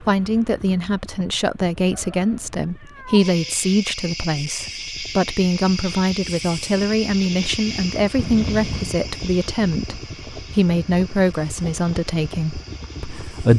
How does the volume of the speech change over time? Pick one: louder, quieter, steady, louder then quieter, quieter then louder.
steady.